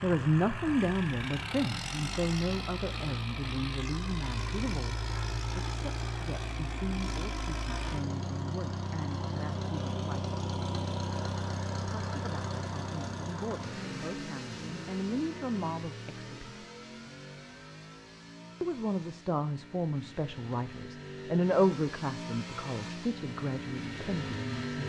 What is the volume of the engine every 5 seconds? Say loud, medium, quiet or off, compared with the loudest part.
loud, loud, loud, medium, loud.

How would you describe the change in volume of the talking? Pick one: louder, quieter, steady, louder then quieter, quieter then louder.
quieter then louder.